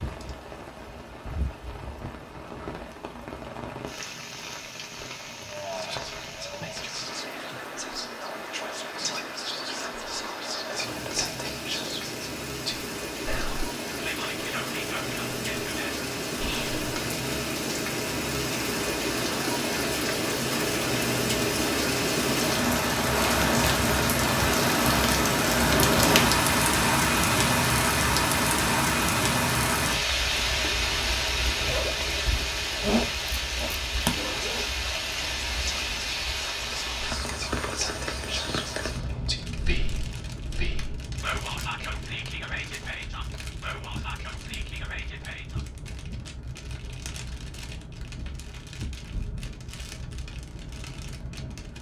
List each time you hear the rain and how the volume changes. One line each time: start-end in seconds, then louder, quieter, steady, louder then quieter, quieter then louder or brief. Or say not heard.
0.0-51.7 louder then quieter.